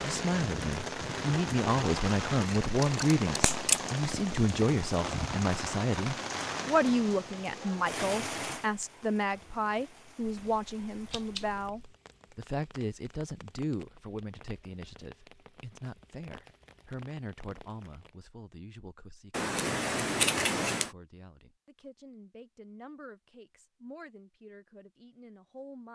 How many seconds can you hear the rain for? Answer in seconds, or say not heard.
18 s.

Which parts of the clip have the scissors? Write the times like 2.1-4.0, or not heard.
2.6-3.8, 10.2-11.9, 19.3-20.9.